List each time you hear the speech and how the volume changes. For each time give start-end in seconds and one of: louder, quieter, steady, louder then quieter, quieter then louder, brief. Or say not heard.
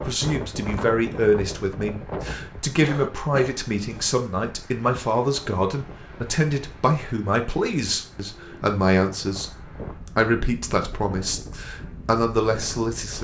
0.0-13.1 steady.